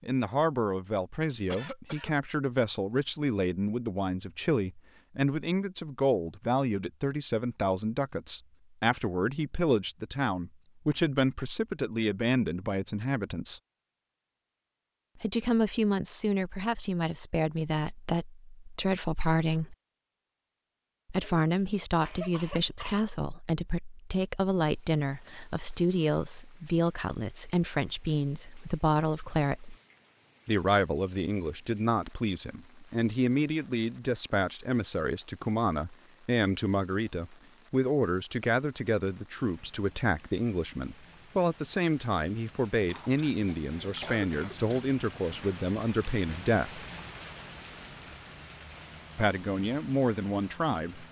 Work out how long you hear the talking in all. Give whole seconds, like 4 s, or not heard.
45 s.